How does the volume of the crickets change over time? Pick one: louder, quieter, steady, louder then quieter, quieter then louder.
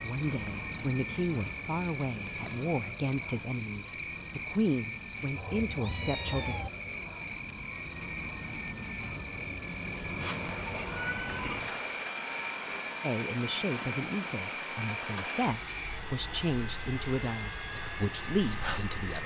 steady.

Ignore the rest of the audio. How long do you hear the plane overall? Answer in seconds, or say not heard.
19 s.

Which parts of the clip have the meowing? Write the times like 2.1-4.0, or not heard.
5.3-6.7, 10.2-12.0.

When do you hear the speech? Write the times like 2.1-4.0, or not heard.
0.0-6.5, 13.0-19.2.